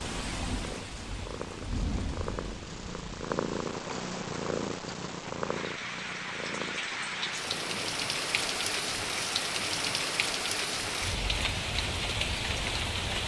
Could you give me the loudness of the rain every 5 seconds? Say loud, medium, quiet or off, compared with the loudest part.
medium, loud, loud.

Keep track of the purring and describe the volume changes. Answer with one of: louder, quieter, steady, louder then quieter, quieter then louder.
louder then quieter.